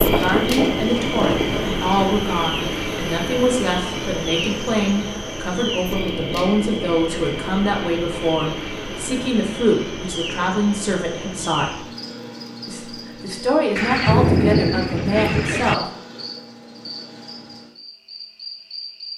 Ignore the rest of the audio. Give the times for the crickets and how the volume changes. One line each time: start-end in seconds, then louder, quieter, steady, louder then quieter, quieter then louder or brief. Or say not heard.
0.0-19.1 quieter.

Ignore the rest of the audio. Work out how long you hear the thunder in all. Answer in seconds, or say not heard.
2 s.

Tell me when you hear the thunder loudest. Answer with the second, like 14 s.
14 s.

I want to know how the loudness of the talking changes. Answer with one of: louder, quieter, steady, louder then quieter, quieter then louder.
steady.